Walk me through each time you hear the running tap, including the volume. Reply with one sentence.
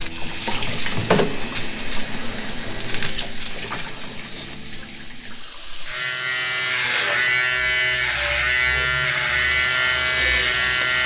You can hear the running tap from 0.0 to 7.5 s, getting quieter; and briefly from 9.0 to 11.0 s.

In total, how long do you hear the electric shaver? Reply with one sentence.
You can hear the electric shaver for 11 seconds altogether.